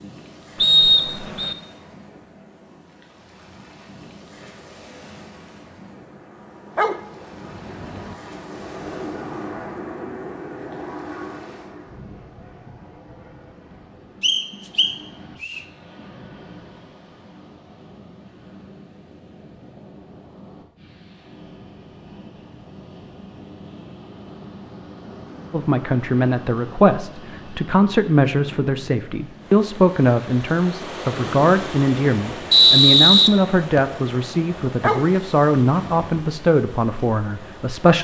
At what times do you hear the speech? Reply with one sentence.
The speech can be heard from 25.5 to 37.9 s.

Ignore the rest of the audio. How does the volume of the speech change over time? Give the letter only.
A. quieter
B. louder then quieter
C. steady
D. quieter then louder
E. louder
C.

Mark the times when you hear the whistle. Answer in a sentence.
You can hear the whistle from 0.6 to 1.6 s, from 14.2 to 15.6 s and from 32.5 to 33.9 s.